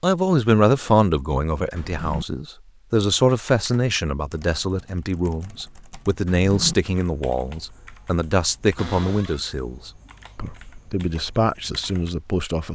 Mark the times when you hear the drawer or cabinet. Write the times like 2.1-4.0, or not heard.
1.8-2.2, 6.2-6.8, 8.8-9.4.